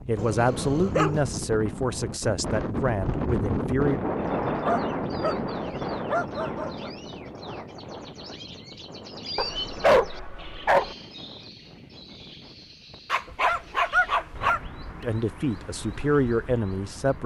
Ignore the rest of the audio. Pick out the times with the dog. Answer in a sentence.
The dog can be heard from 0.1 to 1.2 s, from 4.6 to 6.9 s, from 9.3 to 10.9 s and from 13.1 to 14.6 s.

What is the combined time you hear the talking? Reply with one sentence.
The talking can be heard for 6 seconds in total.